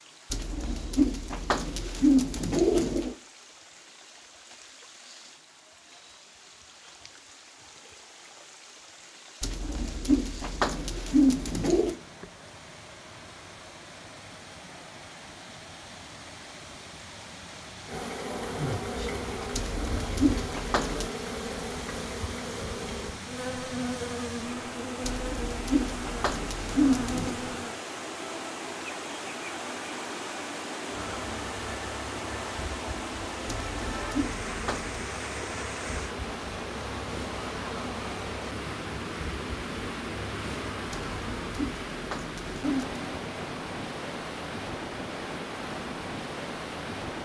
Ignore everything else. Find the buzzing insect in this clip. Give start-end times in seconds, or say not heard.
17.9-27.8, 30.9-41.8.